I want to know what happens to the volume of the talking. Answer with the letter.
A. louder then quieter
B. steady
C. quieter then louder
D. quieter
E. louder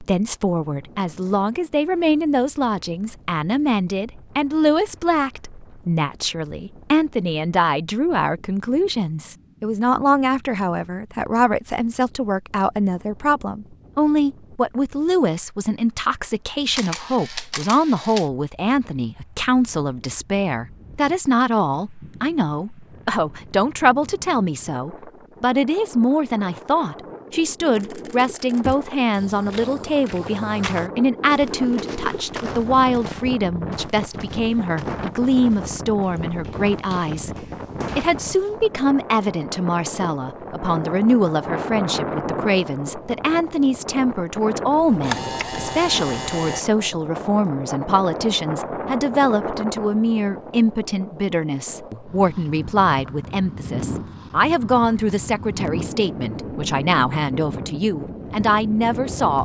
B.